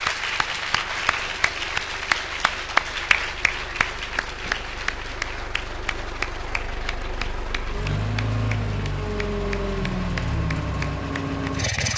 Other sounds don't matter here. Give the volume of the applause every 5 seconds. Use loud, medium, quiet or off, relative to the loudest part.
loud, medium, medium.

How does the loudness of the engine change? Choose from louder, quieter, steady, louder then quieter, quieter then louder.
louder.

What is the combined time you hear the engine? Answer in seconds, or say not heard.
12 s.